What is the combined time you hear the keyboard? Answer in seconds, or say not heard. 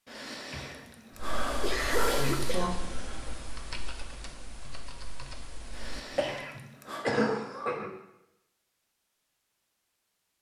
5 s.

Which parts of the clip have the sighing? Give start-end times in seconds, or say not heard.
0.1-2.6, 5.7-7.0.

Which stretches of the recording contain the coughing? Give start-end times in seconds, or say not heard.
0.5-3.1, 6.2-7.9.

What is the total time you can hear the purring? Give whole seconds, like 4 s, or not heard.
not heard.